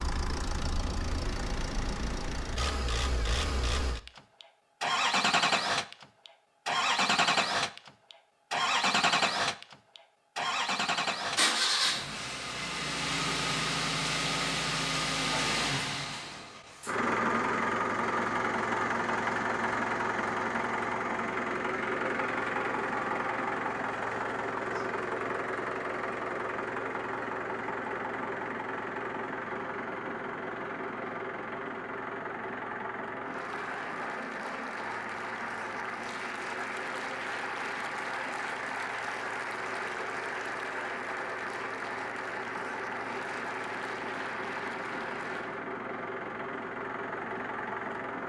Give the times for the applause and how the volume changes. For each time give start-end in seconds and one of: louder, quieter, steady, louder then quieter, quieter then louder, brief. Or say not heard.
33.2-45.6 steady.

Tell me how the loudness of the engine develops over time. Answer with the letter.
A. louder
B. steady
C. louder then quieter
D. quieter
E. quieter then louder
D.